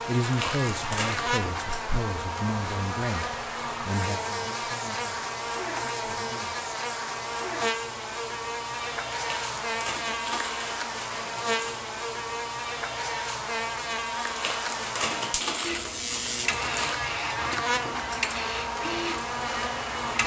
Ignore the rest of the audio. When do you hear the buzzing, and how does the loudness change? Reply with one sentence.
You can hear the buzzing from 0.0 to 20.2 s, at a steady volume.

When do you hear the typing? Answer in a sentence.
The typing can't be heard in this clip.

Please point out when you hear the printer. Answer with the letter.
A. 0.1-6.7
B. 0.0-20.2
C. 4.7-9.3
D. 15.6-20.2
D.